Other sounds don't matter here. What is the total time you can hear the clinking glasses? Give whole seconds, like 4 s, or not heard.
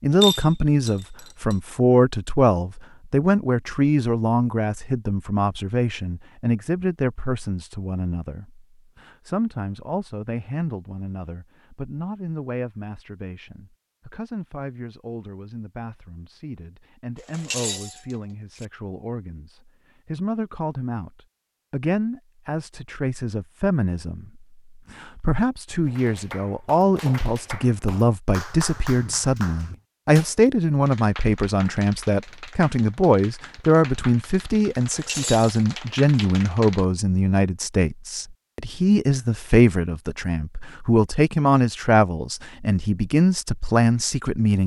4 s.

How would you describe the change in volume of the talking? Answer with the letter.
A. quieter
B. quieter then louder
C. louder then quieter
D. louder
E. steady
B.